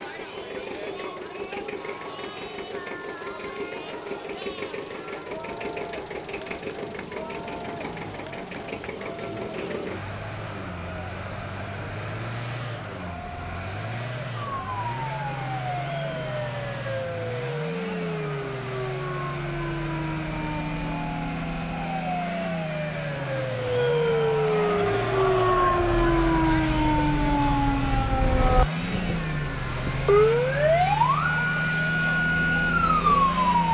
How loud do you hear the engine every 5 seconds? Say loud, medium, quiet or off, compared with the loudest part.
medium, medium, medium, loud, loud, loud, loud.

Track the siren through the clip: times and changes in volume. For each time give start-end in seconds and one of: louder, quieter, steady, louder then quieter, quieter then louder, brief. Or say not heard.
14.3-33.6 louder.